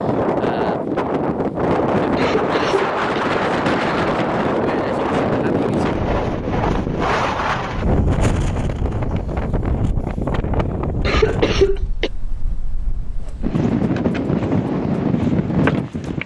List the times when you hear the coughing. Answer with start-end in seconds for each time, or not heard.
2.1-3.2, 11.0-12.1.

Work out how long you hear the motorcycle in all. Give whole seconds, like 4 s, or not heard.
not heard.